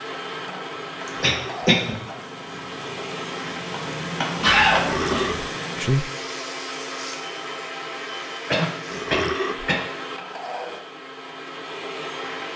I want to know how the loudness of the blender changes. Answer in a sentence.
The volume of the blender stays about the same.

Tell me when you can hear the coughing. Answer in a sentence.
The coughing can be heard from 1.2 to 1.9 s, from 4.4 to 5.3 s and from 8.5 to 9.8 s.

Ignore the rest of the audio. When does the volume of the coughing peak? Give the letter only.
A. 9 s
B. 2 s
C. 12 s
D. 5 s
D.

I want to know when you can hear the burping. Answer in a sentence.
The burping can be heard from 1.2 to 1.8 s, from 4.8 to 5.5 s and from 8.9 to 9.7 s.